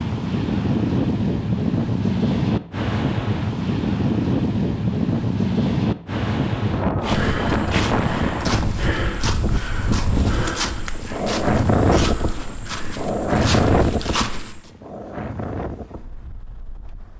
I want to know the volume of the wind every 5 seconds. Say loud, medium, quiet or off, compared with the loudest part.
loud, loud, loud, quiet.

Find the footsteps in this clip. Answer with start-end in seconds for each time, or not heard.
7.0-14.7.